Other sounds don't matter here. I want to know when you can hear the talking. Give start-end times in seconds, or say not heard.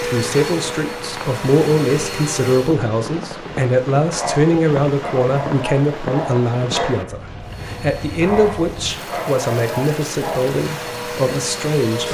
0.0-12.0.